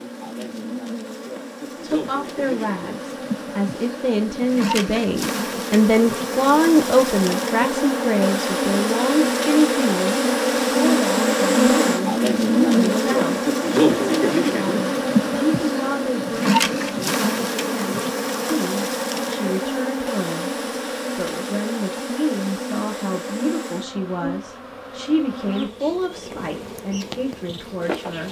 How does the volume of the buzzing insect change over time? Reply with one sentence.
The volume of the buzzing insect goes up, then down.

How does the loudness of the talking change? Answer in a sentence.
The loudness of the talking goes down.